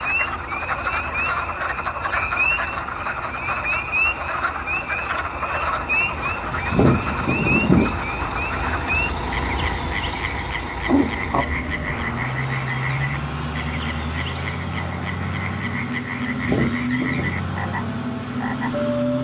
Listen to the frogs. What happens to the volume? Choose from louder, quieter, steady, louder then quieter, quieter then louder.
quieter.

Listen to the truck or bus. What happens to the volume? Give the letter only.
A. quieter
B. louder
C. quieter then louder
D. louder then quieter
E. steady
B.